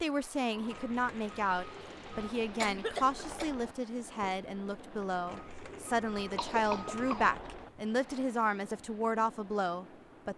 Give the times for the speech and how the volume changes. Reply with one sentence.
You can hear the speech from 0.0 to 10.3 s, at a steady volume.